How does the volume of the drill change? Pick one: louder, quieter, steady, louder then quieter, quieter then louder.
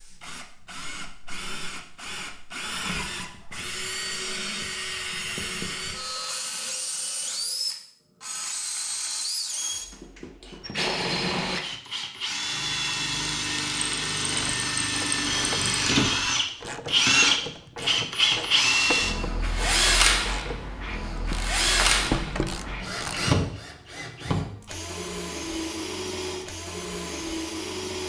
louder then quieter.